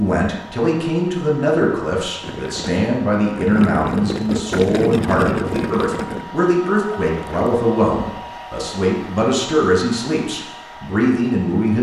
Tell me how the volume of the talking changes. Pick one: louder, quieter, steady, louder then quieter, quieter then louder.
steady.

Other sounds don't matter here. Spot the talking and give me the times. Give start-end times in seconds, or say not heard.
0.0-11.7.